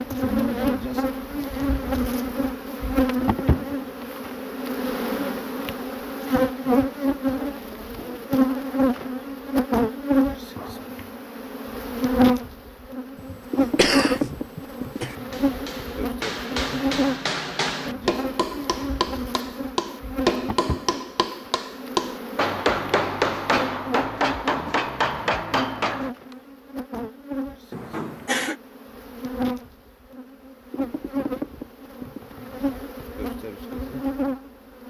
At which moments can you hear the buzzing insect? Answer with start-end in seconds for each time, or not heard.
0.0-34.8.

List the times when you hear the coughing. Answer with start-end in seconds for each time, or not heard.
13.3-15.2, 27.7-28.6.